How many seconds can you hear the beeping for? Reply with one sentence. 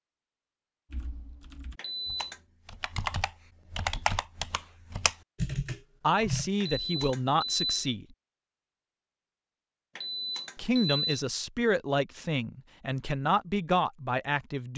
The beeping can be heard for 3 seconds in total.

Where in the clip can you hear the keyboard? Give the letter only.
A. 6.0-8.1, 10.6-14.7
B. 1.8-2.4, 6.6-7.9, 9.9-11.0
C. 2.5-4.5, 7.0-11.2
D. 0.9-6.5
D.